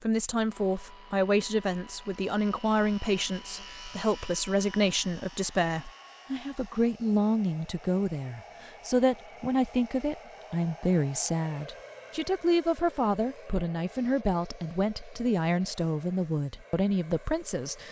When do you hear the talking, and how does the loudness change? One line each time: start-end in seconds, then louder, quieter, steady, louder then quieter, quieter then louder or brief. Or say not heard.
0.0-17.8 steady.